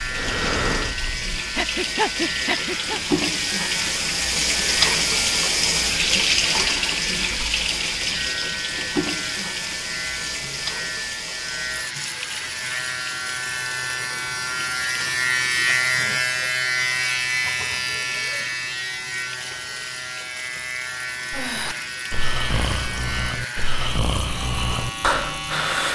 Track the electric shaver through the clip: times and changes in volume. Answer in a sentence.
You can hear the electric shaver from 0.0 to 25.8 s, getting louder then quieter.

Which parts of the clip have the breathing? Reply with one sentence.
You can hear the breathing from 0.0 to 3.0 s and from 21.3 to 25.8 s.